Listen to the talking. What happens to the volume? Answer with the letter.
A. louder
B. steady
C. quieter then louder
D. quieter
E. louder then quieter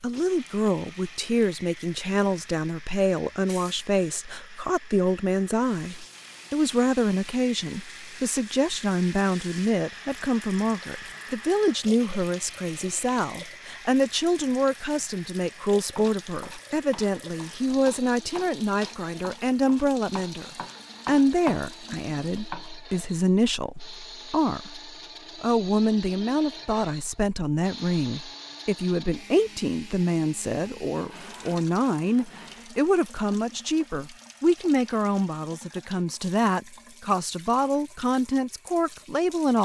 B.